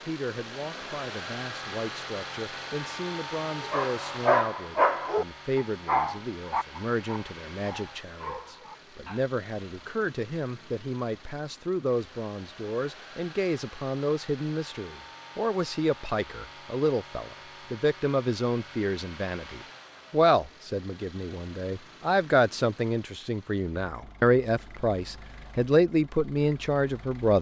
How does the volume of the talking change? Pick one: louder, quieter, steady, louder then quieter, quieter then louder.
louder.